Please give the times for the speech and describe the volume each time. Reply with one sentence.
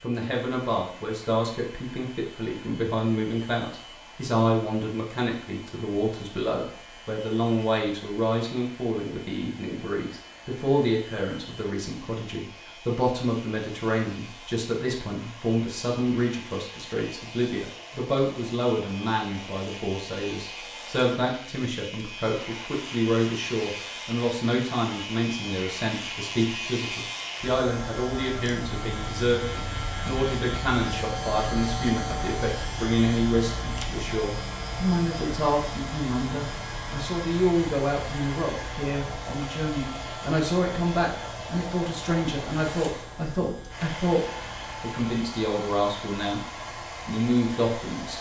You can hear the speech from 0.0 to 46.4 s, at a steady volume; and briefly from 47.0 to 48.1 s.